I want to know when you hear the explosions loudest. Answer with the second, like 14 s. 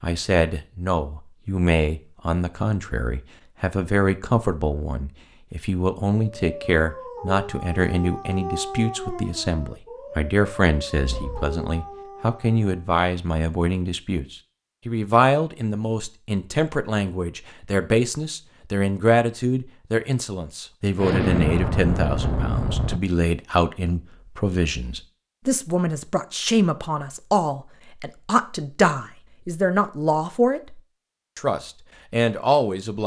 21 s.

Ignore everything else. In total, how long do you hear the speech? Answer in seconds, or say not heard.
33 s.